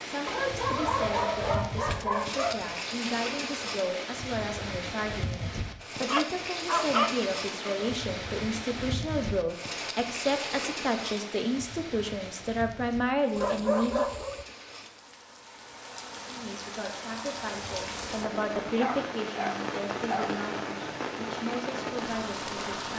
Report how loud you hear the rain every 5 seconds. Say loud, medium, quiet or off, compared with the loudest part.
loud, loud, medium, loud, loud.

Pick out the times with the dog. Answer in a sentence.
You can hear the dog from 0.2 to 2.7 s, from 6.0 to 8.0 s, from 13.3 to 14.4 s and from 18.8 to 20.4 s.